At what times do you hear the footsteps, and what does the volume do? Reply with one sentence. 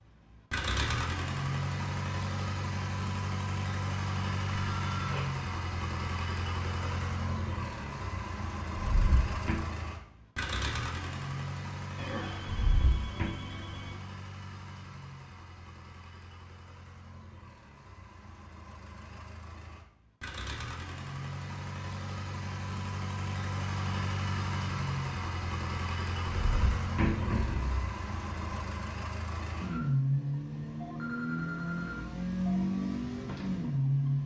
The footsteps can't be heard in this clip.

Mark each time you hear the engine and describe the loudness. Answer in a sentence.
You can hear the engine from 0.1 to 34.2 s, getting quieter then louder.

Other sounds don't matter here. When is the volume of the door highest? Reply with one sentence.
The loudest moment of the door is at 27 seconds.